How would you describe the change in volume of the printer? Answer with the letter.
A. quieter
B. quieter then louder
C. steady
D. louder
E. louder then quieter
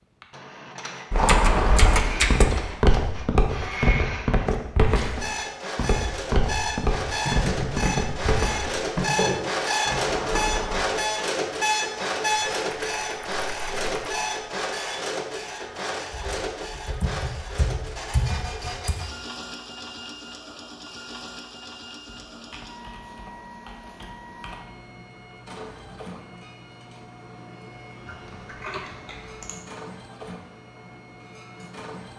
E.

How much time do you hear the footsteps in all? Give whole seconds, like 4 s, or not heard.
10 s.